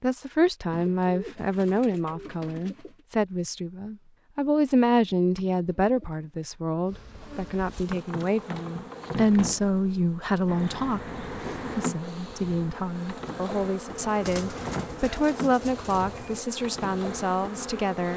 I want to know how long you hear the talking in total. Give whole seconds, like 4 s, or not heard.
18 s.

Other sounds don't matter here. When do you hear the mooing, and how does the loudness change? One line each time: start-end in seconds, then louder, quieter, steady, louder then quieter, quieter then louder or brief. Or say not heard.
not heard.